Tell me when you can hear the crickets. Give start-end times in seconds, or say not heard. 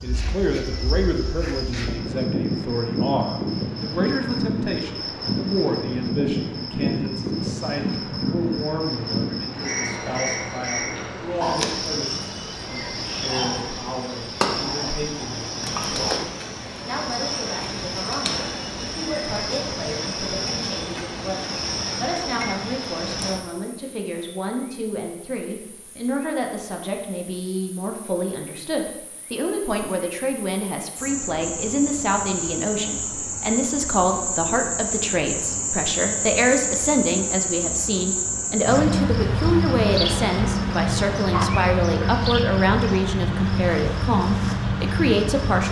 0.0-45.6.